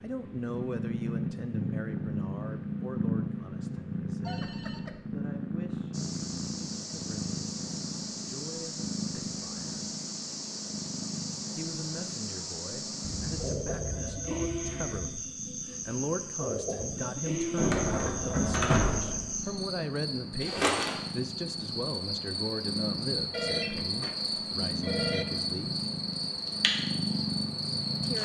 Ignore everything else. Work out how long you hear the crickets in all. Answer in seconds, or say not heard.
22 s.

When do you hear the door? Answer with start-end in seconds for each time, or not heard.
17.6-19.4.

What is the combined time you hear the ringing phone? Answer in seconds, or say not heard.
5 s.